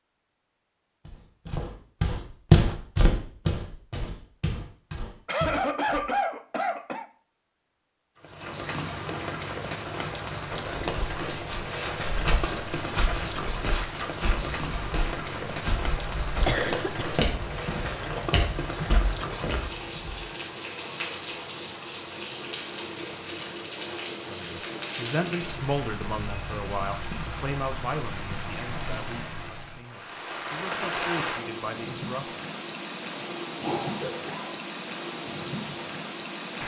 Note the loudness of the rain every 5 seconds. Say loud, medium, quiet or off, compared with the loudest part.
off, loud, loud, loud, loud, loud, loud, loud.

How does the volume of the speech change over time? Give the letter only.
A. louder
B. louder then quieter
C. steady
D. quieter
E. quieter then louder
E.